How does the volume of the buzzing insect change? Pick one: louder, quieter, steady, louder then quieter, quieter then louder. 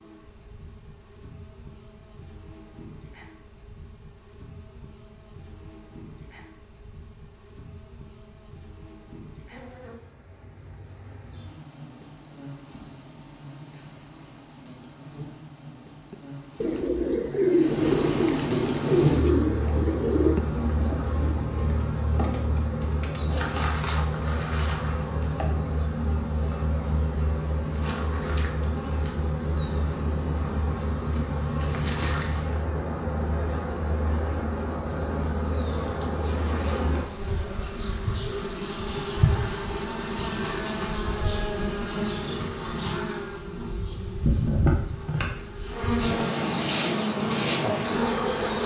louder.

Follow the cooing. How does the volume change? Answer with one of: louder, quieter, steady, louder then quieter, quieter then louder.
quieter.